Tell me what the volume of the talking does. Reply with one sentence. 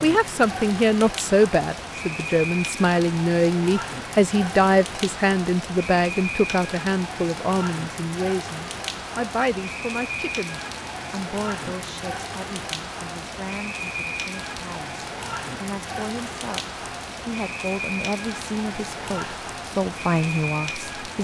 The loudness of the talking goes down, then up.